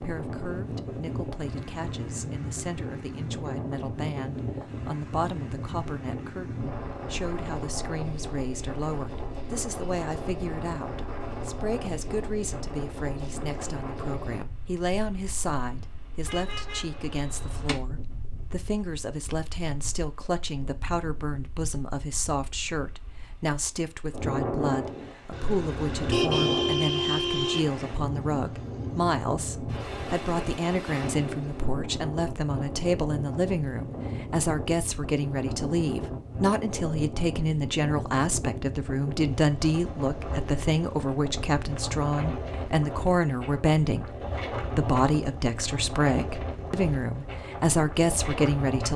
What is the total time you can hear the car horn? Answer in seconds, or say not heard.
4 s.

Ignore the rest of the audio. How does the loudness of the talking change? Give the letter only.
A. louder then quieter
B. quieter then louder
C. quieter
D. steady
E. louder
E.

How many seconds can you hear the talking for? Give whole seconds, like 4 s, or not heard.
48 s.